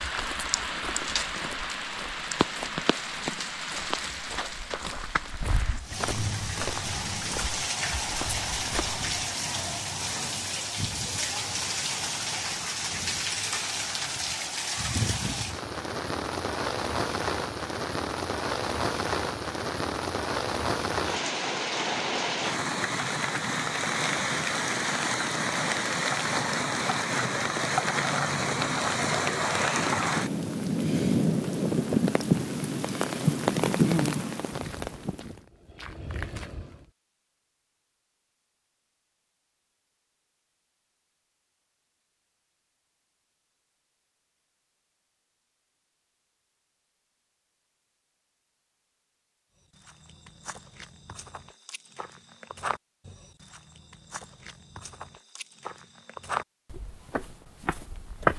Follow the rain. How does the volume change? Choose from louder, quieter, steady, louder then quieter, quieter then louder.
louder.